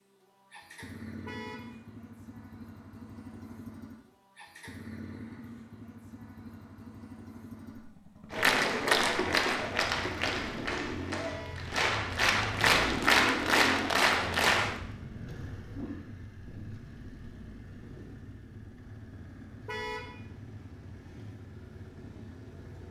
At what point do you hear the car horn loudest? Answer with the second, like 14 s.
20 s.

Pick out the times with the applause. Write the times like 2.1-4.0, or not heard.
8.3-14.8.